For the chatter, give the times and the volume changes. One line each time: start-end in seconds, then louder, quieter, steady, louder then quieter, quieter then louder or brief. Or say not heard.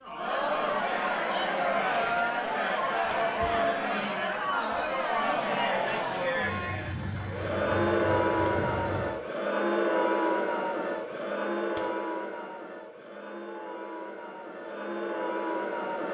0.0-16.0 quieter.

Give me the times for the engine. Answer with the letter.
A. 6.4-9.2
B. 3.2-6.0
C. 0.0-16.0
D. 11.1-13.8
A.